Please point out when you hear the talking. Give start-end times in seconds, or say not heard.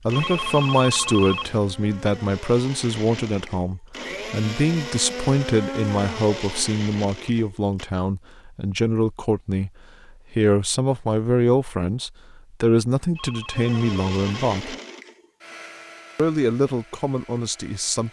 0.1-9.7, 10.3-14.8, 16.1-18.0.